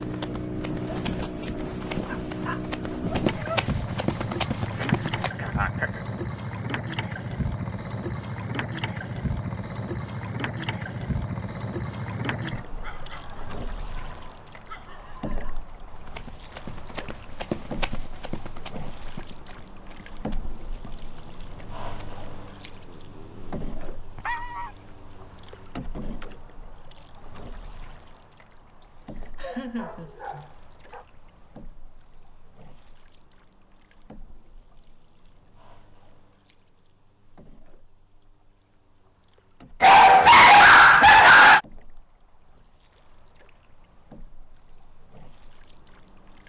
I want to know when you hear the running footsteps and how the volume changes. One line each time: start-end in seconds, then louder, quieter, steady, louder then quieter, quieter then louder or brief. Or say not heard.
0.0-5.3 louder
15.9-22.2 louder then quieter.